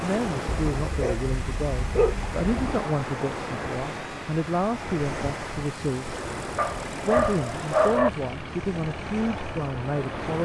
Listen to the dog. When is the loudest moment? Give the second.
8 s.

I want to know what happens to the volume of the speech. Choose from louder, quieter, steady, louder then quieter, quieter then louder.
steady.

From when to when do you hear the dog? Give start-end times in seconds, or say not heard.
0.7-2.6, 6.5-8.1.